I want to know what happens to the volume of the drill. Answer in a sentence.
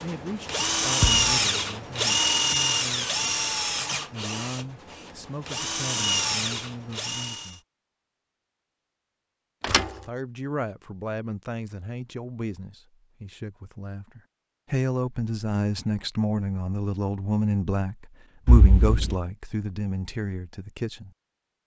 The volume of the drill goes down, then up.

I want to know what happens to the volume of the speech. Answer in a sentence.
The loudness of the speech goes up.